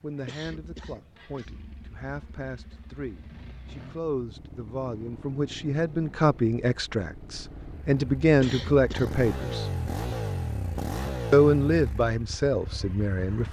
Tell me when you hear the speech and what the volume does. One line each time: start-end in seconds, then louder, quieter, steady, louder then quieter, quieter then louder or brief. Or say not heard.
0.0-9.7 louder
11.3-13.4 brief.